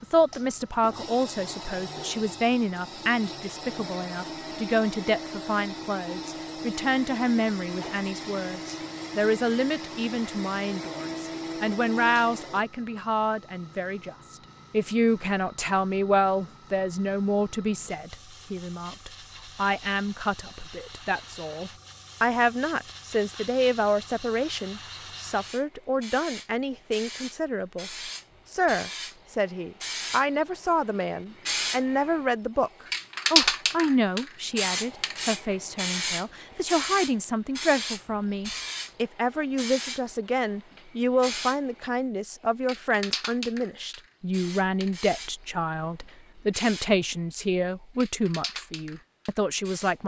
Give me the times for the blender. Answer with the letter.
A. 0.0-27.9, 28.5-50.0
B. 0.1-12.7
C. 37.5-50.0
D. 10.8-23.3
B.